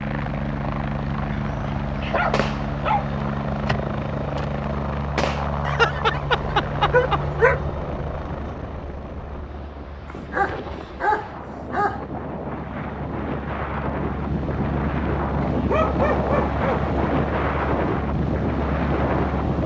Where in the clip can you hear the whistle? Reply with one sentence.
The whistle can't be heard in this clip.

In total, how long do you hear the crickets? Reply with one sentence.
The crickets can't be heard in this clip.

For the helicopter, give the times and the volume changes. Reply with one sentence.
The helicopter can be heard from 0.0 to 19.6 s, getting quieter then louder.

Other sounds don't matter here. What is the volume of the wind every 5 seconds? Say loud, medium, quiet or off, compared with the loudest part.
off, quiet, medium, loud.